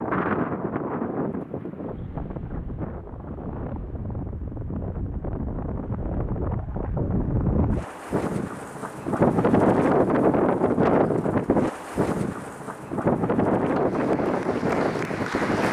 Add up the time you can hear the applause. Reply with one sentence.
You can hear the applause for 2 seconds altogether.